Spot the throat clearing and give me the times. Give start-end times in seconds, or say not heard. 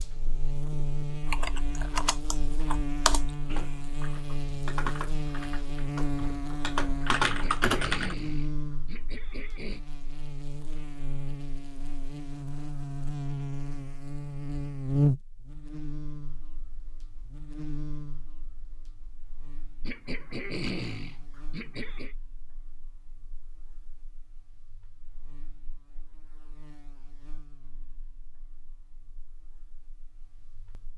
7.2-9.8, 19.8-22.1.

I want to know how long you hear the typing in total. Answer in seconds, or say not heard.
7 s.